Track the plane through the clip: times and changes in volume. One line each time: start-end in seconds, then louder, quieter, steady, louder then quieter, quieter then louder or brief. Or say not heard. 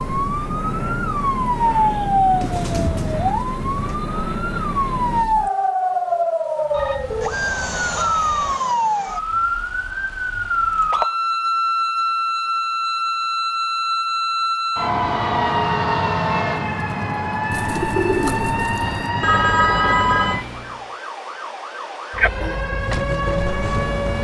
0.0-5.2 steady.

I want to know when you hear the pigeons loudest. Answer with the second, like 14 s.
18 s.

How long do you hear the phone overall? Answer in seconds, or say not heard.
3 s.